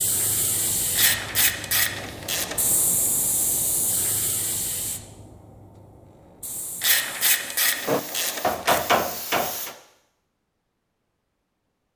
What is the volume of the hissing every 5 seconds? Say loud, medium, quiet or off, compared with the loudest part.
loud, medium, off.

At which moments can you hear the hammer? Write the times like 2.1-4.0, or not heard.
7.8-9.8.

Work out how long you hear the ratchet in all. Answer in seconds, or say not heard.
4 s.